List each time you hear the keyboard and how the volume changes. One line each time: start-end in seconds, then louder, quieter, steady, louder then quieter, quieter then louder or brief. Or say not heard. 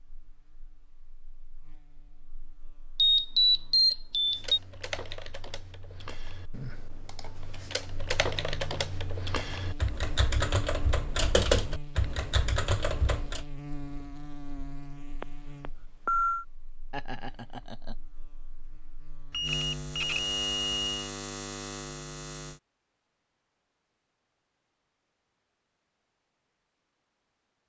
4.2-13.4 louder.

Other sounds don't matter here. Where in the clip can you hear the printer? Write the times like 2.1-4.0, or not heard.
not heard.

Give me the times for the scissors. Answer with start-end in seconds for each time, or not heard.
not heard.